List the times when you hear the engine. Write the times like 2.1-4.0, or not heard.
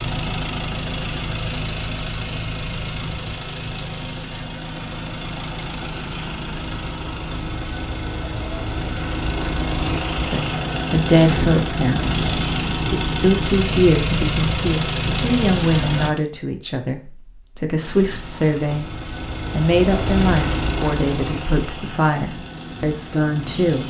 0.0-16.1, 17.8-23.8.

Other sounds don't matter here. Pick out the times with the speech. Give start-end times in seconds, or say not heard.
10.2-23.8.